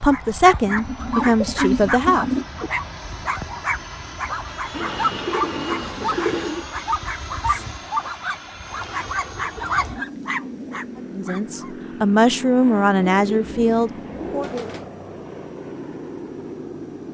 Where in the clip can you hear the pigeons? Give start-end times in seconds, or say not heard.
0.7-2.7, 4.7-6.7, 8.8-10.8, 13.0-14.9.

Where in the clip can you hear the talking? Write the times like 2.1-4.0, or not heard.
0.0-2.2, 10.9-14.5.